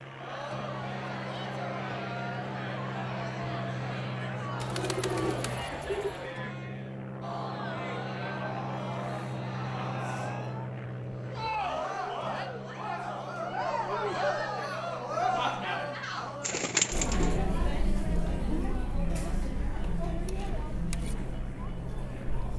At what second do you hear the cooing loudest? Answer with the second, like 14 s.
17 s.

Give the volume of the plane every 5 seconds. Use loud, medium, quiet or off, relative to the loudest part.
loud, loud, loud, medium, medium.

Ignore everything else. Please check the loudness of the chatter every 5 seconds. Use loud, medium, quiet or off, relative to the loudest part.
medium, medium, loud, loud, medium.